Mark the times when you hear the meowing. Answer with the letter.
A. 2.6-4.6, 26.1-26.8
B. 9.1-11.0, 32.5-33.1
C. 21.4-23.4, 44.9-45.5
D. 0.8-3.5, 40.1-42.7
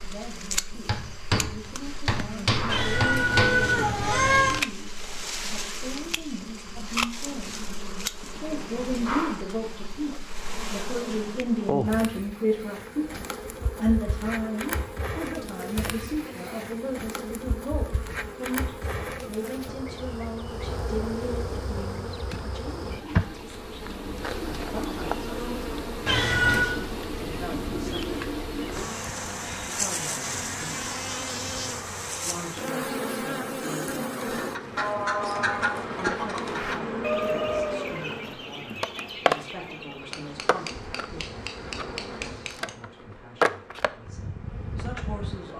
A.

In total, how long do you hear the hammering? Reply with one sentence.
The hammering can be heard for 5 seconds in total.